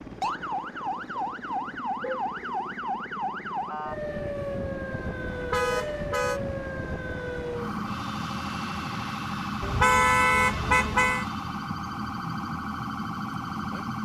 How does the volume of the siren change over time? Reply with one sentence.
The loudness of the siren stays about the same.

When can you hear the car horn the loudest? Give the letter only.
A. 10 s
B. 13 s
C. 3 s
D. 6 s
A.